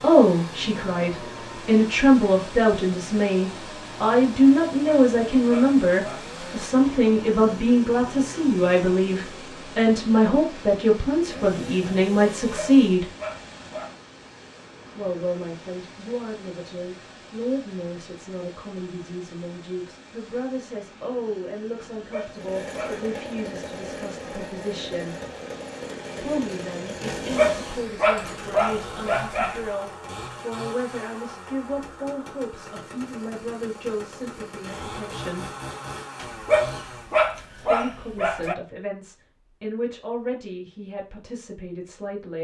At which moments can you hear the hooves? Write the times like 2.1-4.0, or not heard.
not heard.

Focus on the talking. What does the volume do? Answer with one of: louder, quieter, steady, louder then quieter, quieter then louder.
quieter.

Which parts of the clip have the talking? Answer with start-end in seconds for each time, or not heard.
0.0-13.1, 14.9-25.1, 26.2-35.5, 37.6-42.3.